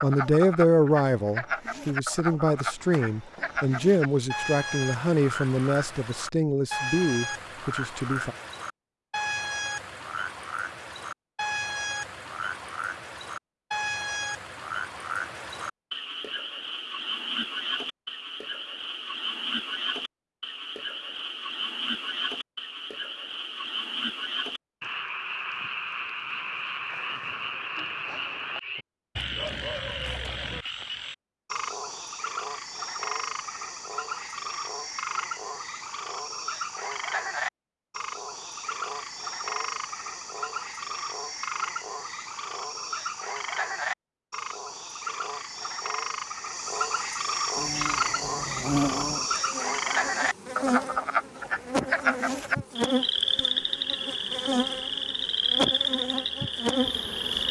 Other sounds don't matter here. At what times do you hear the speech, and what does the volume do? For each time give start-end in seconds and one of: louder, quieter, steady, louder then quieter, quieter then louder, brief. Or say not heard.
0.0-8.3 quieter.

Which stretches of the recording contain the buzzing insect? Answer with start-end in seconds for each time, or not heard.
47.5-57.4.